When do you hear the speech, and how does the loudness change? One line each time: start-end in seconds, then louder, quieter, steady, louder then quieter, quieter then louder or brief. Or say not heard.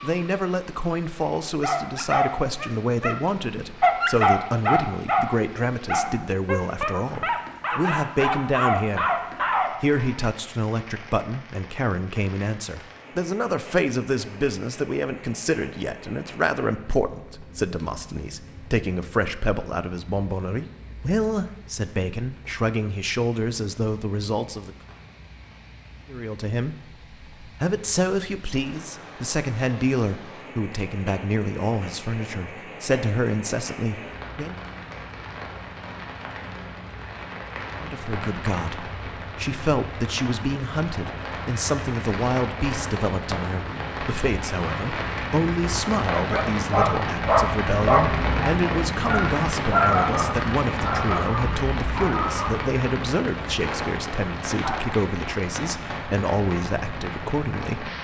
0.0-24.8 steady
26.1-34.5 steady
37.8-57.9 steady.